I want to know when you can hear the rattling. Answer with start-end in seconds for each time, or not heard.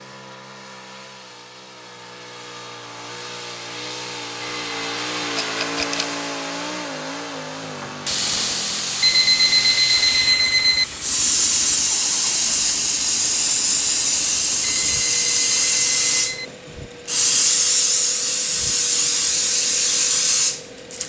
5.4-6.1.